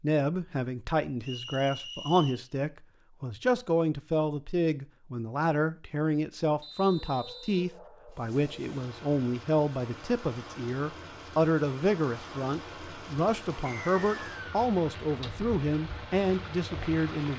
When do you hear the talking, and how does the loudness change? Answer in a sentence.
The talking can be heard from 0.0 to 17.3 s, at a steady volume.